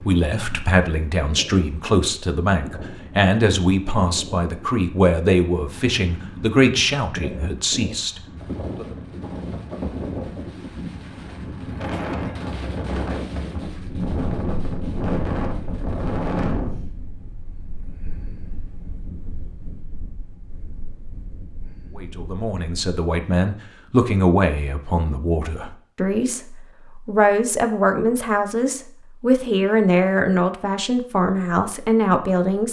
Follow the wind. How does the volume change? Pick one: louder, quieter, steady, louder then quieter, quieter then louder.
louder then quieter.